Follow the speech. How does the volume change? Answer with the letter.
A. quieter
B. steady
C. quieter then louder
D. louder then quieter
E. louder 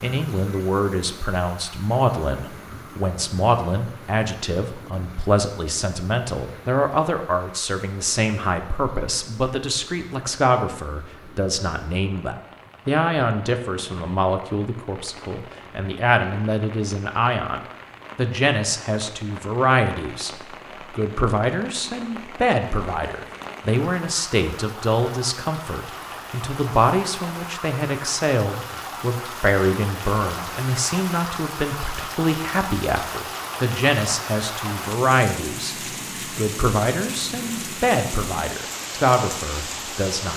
B.